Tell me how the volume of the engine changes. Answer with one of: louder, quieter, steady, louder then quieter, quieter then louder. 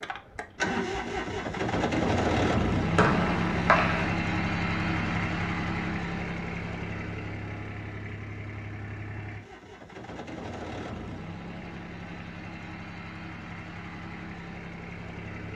quieter.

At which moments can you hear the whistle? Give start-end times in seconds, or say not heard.
3.0-4.2.